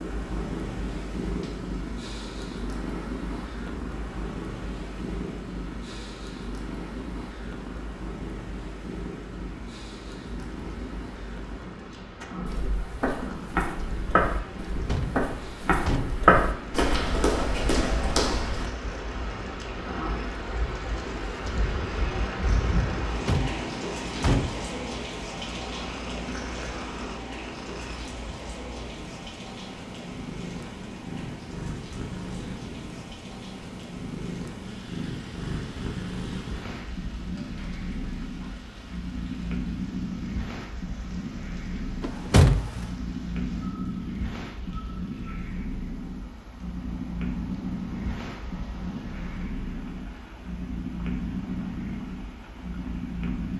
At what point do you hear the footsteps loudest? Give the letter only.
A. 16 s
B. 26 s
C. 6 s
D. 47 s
A.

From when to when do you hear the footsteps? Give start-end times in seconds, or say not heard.
12.2-18.7.